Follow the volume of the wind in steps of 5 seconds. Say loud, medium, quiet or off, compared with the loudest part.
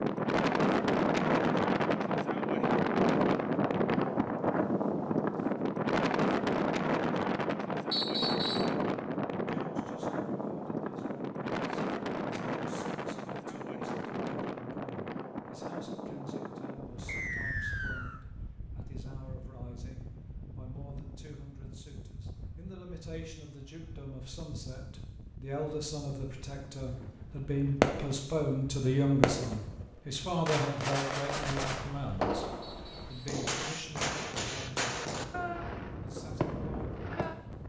loud, loud, medium, quiet, quiet, quiet, quiet, quiet.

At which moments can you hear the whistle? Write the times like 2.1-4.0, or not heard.
7.9-8.8, 17.1-18.2, 32.6-33.4.